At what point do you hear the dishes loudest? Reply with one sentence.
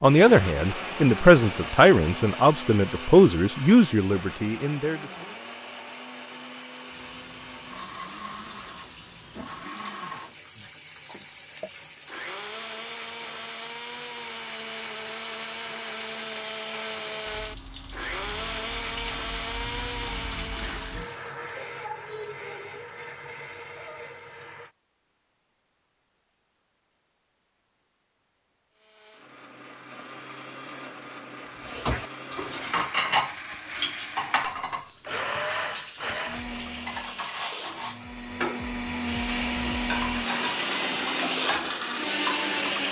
The volume of the dishes peaks at 33 seconds.